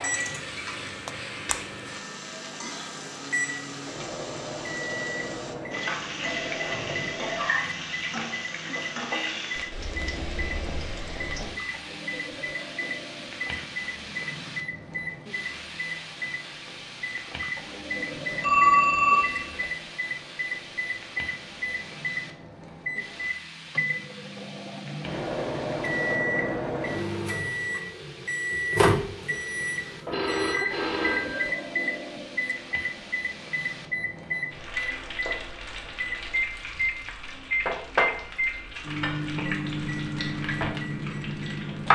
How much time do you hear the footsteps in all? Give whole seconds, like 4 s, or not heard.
not heard.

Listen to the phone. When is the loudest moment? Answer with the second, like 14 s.
19 s.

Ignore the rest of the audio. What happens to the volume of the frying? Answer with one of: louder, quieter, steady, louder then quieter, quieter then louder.
quieter then louder.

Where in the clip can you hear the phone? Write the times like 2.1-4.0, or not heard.
6.2-7.5, 18.4-19.7, 30.1-31.6.